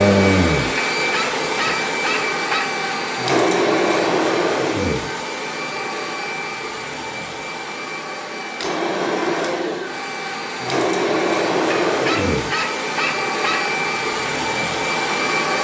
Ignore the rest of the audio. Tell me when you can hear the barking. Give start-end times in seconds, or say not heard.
1.0-2.8, 11.8-13.7.